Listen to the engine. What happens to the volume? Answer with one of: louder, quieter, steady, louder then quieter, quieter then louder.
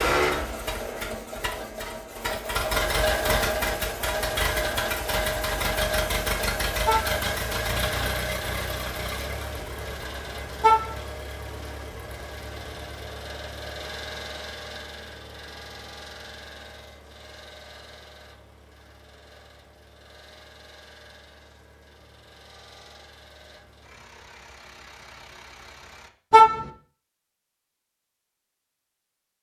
quieter.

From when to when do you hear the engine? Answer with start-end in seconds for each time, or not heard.
0.0-26.1.